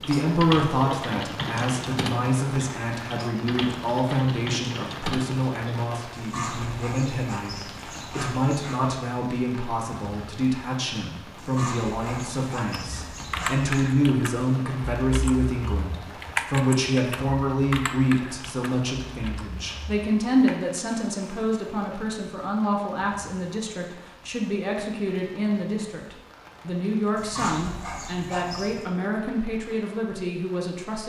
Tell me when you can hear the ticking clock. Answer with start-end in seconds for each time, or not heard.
not heard.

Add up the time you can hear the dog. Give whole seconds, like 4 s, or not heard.
7 s.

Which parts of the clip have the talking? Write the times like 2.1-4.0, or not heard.
0.0-31.0.